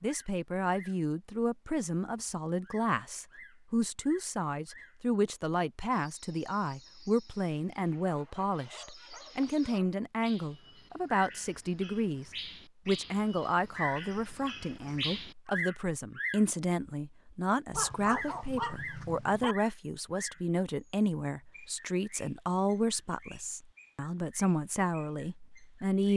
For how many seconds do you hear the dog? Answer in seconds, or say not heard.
4 s.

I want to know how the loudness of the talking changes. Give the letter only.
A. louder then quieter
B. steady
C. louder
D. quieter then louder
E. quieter
B.